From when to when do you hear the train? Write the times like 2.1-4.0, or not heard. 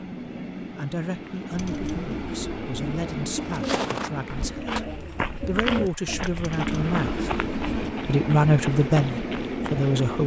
0.0-4.7, 6.4-10.2.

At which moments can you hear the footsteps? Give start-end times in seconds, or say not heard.
3.4-9.9.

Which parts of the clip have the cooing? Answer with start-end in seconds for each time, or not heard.
1.5-8.0.